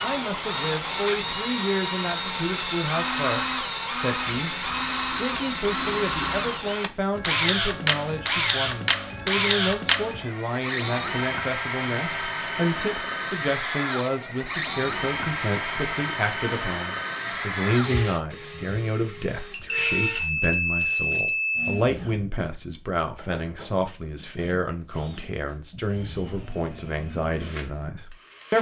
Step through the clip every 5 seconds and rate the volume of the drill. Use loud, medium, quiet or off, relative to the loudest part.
loud, loud, loud, loud, quiet, quiet.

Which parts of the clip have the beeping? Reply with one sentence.
The beeping can be heard from 19.5 to 21.8 s.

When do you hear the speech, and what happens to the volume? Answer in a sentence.
The speech can be heard from 0.0 to 28.5 s, at a steady volume.